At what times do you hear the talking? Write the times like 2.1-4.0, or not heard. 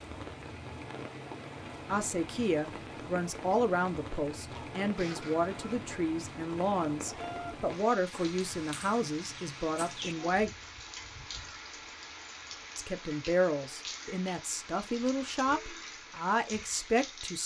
1.9-10.5, 12.8-17.4.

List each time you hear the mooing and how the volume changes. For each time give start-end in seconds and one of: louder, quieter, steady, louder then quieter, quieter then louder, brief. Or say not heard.
not heard.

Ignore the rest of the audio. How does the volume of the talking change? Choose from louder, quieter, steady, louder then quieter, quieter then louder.
steady.